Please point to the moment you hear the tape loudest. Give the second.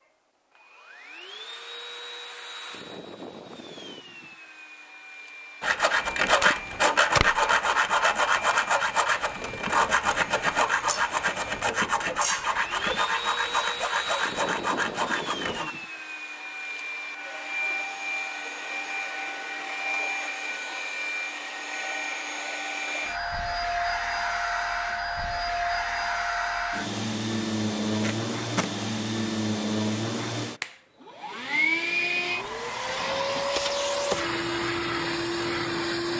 7 s.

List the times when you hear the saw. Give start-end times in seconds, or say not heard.
5.6-15.8.